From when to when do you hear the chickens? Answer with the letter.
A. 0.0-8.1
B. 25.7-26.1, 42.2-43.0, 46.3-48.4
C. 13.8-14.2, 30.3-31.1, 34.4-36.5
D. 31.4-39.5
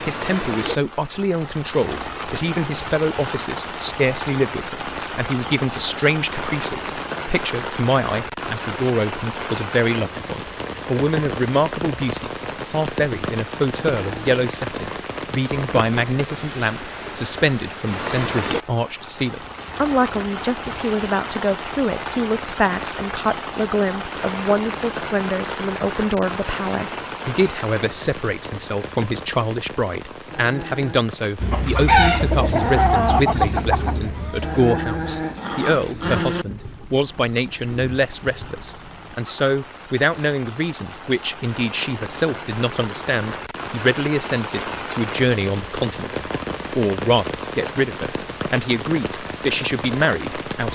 D.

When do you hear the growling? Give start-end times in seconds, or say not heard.
13.8-14.2, 30.3-31.1, 34.4-36.5.